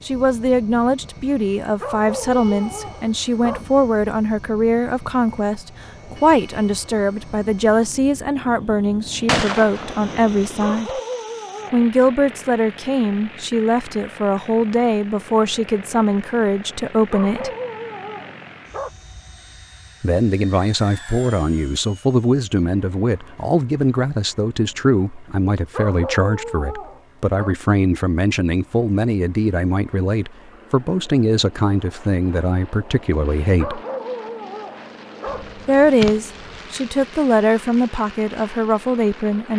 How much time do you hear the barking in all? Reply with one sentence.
The barking can be heard for 9 seconds in total.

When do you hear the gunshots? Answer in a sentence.
The gunshots can be heard from 9.2 to 10.8 s and from 35.2 to 36.9 s.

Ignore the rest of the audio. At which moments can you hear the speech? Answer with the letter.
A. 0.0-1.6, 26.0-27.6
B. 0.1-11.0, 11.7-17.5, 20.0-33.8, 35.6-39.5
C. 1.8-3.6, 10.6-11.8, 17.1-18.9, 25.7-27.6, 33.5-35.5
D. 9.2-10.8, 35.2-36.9
B.